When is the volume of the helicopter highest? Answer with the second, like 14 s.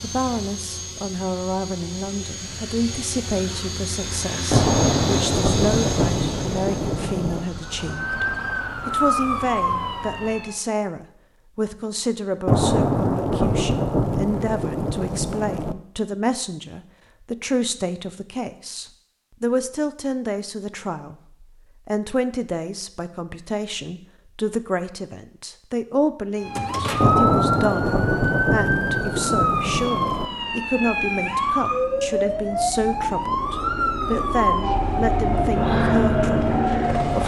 36 s.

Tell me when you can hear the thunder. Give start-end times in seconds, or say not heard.
4.5-7.5, 12.4-15.8, 27.0-30.2.